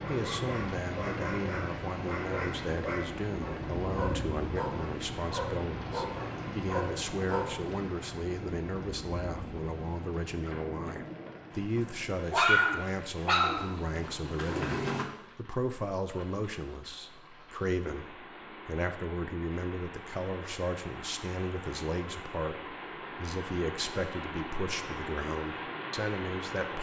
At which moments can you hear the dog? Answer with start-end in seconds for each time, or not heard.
0.0-7.5, 11.8-15.1.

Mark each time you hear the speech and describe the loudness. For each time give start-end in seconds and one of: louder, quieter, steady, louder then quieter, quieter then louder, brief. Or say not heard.
0.1-26.7 steady.